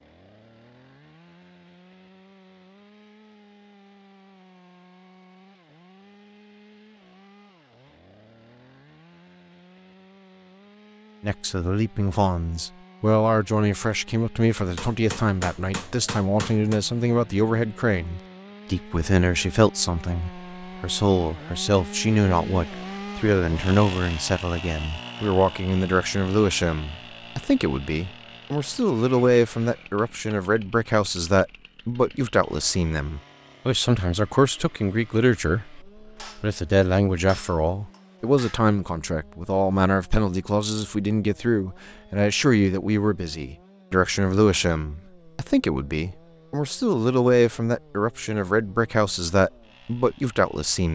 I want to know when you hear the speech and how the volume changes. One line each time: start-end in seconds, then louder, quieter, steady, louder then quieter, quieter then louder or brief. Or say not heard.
11.2-50.9 steady.